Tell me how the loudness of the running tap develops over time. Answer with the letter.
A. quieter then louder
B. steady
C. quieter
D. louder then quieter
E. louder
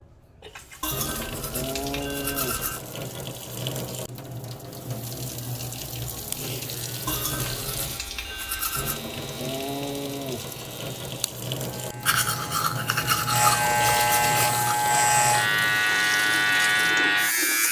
B.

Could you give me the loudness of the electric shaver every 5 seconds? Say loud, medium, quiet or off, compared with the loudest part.
off, quiet, medium, loud.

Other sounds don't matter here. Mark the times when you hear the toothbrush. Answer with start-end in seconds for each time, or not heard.
0.8-2.8, 7.0-9.0, 12.1-14.8.